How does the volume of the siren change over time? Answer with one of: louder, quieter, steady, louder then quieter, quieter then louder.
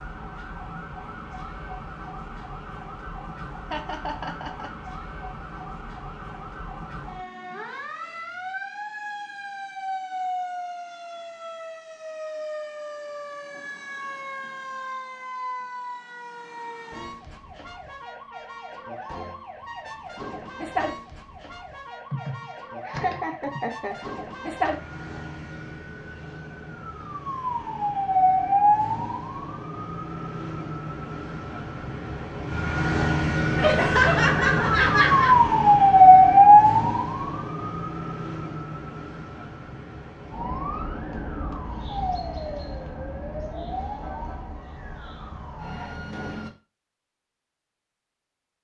louder then quieter.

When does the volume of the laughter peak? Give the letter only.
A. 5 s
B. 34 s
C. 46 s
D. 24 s
B.